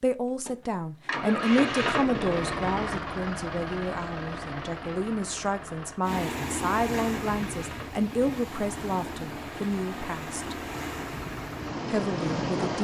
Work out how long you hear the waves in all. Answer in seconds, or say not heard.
7 s.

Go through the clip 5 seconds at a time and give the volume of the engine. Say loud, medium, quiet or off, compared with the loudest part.
loud, medium, medium.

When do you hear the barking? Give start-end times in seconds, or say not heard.
not heard.